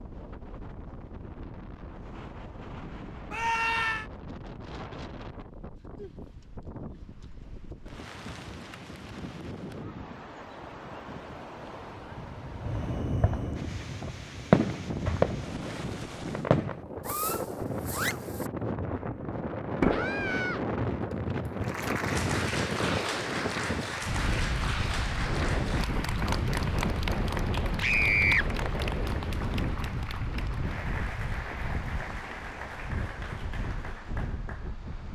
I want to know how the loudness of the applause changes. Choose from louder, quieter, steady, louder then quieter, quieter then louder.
quieter.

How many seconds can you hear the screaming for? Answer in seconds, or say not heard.
2 s.